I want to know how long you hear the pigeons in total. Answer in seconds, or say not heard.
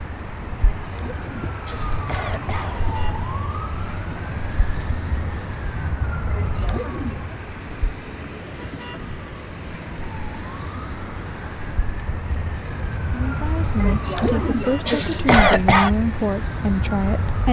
not heard.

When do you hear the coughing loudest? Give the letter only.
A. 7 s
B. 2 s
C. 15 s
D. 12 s
C.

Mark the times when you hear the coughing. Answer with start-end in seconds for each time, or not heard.
0.8-2.8, 6.3-7.2, 13.8-15.9.